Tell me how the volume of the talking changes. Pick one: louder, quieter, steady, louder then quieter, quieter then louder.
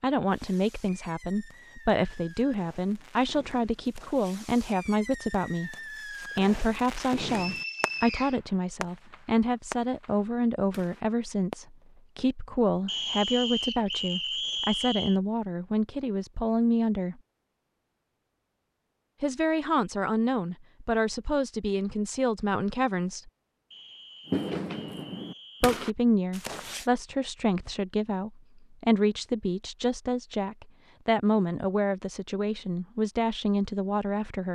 steady.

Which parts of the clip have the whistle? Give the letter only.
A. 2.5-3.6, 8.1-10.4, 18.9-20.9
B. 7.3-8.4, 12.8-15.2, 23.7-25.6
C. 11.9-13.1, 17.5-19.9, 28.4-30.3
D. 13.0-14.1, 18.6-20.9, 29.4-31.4
B.